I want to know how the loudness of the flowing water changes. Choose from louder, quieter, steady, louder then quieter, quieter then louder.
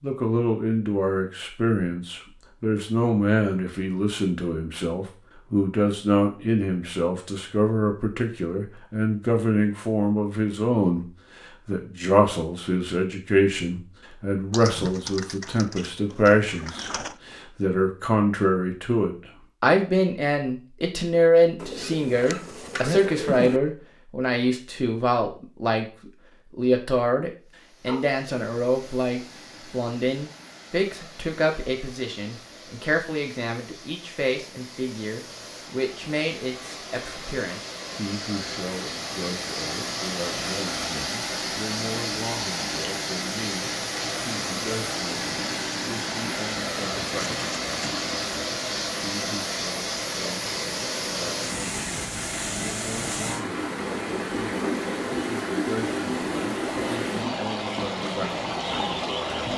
louder.